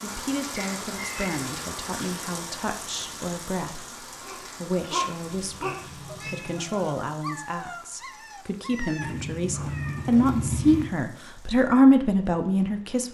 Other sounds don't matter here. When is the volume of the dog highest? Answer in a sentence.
The loudest moment of the dog is at 5 seconds.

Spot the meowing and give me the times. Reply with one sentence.
The meowing can be heard from 0.6 to 1.3 s, from 5.2 to 7.0 s and from 9.0 to 10.9 s.